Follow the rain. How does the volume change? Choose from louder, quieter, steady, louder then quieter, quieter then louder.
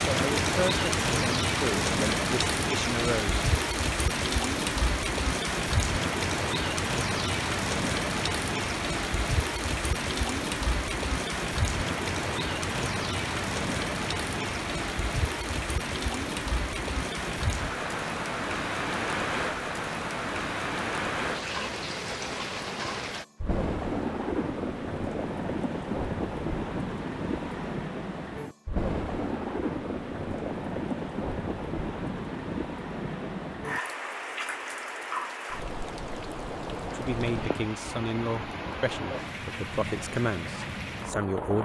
quieter.